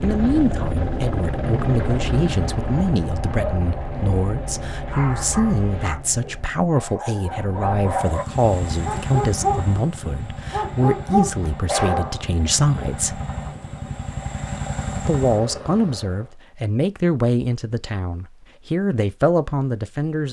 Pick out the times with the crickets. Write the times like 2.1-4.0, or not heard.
not heard.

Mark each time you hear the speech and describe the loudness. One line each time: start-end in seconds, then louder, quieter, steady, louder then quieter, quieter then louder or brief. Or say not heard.
0.0-13.2 steady
15.1-20.2 steady.